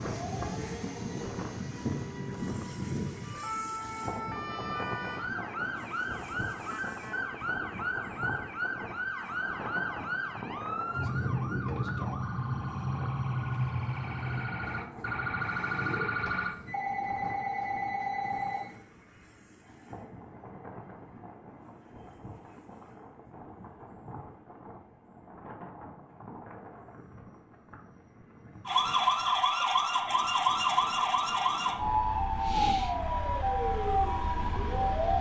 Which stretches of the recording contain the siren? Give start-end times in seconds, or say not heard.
0.0-16.6, 28.6-35.1.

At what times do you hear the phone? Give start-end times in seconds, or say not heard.
16.2-18.8.